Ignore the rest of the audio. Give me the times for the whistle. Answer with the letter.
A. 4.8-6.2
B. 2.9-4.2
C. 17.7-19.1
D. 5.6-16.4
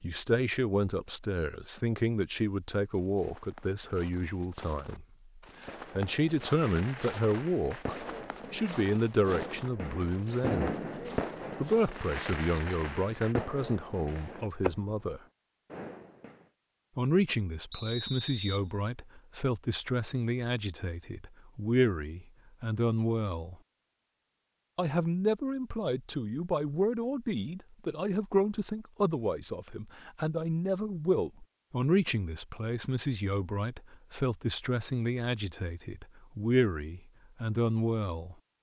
C.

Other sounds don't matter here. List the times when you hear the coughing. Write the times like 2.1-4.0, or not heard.
not heard.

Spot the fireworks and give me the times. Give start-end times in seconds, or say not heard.
5.6-16.4.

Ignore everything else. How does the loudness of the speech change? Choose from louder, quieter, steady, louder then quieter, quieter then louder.
steady.